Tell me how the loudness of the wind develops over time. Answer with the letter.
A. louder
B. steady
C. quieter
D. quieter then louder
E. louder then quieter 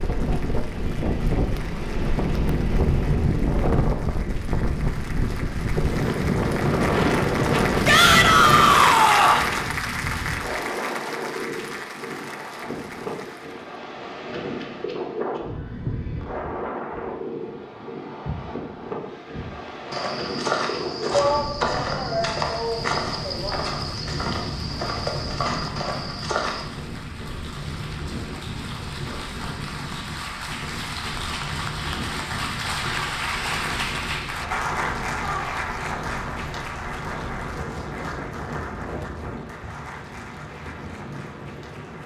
C.